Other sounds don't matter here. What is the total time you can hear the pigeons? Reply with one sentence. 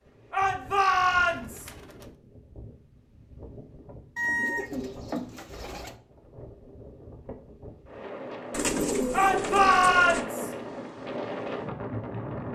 You can hear the pigeons for 5 seconds altogether.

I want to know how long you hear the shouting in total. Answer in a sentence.
The shouting can be heard for 3 seconds in total.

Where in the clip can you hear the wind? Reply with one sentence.
The wind can be heard from 0.0 to 12.4 s.